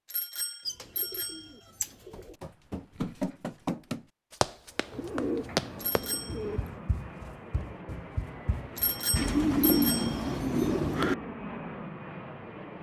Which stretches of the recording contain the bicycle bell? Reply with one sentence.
The bicycle bell can be heard from 0.1 to 1.5 s, from 5.8 to 6.4 s and from 8.8 to 10.7 s.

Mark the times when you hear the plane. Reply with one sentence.
You can hear the plane from 4.6 to 12.7 s.